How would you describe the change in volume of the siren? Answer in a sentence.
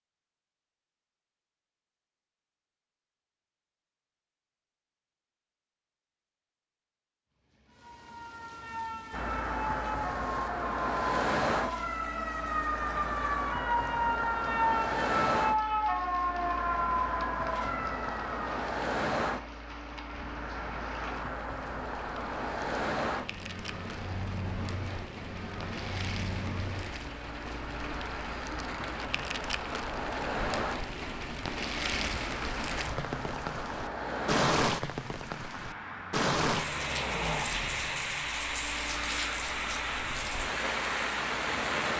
The loudness of the siren goes up.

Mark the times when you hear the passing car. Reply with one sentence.
The passing car can be heard from 9.1 to 41.9 s.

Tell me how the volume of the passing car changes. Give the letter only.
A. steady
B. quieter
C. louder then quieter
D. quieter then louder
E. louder
B.